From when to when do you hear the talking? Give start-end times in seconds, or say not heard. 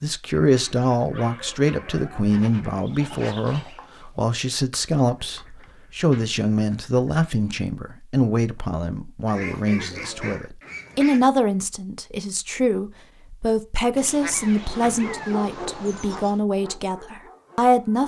0.0-18.0.